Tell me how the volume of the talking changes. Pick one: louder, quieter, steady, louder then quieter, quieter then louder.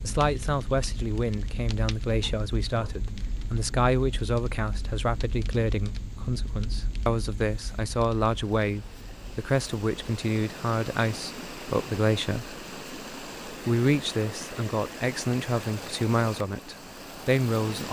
steady.